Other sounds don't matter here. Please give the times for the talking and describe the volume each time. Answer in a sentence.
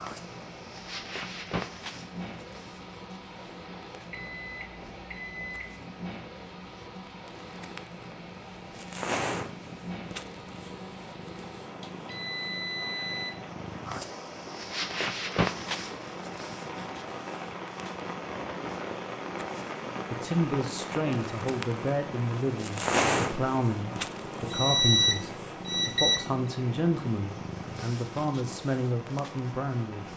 You can hear the talking from 20.1 to 30.1 s, at a steady volume.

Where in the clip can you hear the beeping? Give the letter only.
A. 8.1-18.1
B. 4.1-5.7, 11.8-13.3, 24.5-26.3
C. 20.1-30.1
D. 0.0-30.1
B.